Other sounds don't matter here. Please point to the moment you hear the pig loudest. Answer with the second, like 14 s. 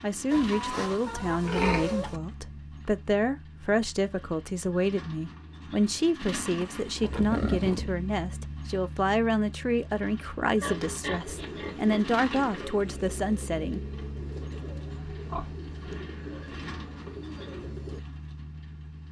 2 s.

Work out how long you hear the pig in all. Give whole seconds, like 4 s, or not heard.
7 s.